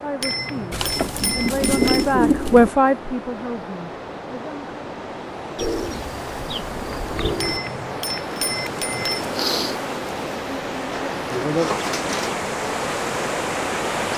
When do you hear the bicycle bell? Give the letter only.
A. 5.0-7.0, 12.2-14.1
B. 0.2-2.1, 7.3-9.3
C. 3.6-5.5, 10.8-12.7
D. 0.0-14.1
B.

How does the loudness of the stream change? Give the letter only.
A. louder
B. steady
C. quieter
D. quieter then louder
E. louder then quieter
A.